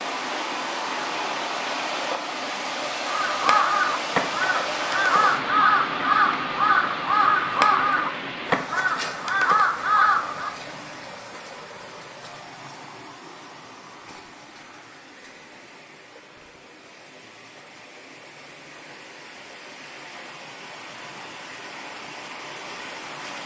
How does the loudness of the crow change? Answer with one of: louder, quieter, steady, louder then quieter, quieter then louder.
steady.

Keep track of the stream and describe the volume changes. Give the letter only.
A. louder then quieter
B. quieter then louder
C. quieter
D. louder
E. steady
B.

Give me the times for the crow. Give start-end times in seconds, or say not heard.
3.0-10.6.